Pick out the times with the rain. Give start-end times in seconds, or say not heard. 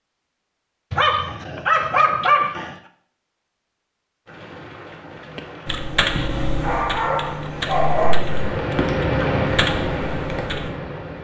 4.2-11.1.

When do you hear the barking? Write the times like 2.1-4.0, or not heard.
0.9-2.8, 6.6-8.2.